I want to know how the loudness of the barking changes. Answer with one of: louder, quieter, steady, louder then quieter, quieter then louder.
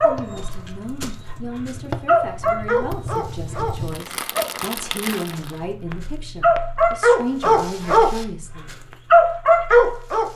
louder.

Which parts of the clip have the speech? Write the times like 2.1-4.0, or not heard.
0.0-8.7.